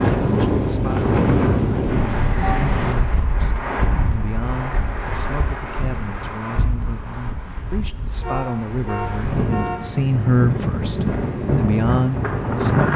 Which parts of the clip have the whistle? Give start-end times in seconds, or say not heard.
not heard.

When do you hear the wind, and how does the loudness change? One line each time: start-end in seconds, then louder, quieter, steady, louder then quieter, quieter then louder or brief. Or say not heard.
0.0-12.9 quieter then louder.